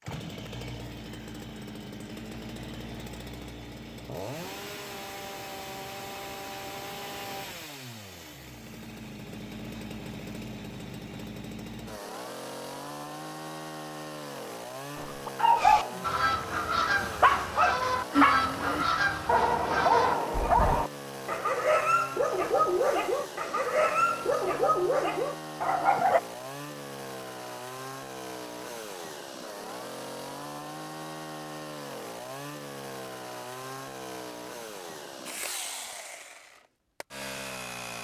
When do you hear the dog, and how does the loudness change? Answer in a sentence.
You can hear the dog from 14.9 to 26.2 s, at a steady volume.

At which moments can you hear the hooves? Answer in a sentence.
You can't hear the hooves here.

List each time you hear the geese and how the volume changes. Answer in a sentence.
You can hear the geese from 15.6 to 20.9 s, at a steady volume.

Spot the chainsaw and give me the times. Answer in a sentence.
You can hear the chainsaw from 0.0 to 37.9 s.